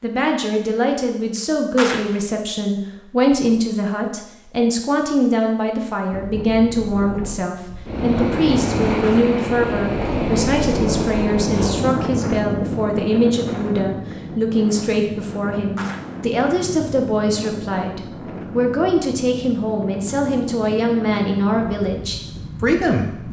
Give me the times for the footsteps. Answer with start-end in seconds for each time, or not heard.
not heard.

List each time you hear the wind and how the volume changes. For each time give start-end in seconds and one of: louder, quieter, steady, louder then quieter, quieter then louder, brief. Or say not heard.
6.1-23.2 quieter.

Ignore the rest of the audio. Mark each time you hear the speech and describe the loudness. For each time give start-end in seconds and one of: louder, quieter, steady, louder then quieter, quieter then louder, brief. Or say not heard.
0.0-23.2 steady.